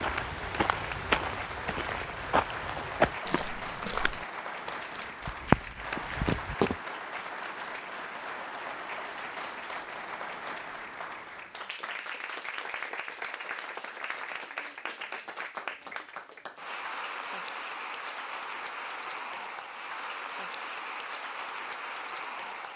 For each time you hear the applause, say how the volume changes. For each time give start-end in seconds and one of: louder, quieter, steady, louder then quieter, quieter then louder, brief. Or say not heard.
0.0-22.7 steady.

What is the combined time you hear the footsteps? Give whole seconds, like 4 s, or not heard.
7 s.